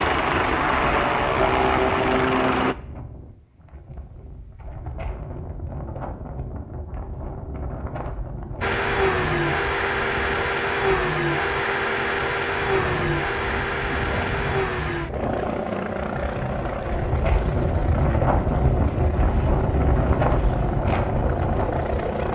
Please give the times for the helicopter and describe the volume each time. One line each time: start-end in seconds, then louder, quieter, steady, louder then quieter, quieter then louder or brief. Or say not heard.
0.0-2.8 brief
8.6-22.2 quieter.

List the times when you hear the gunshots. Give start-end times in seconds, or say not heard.
12.7-13.2.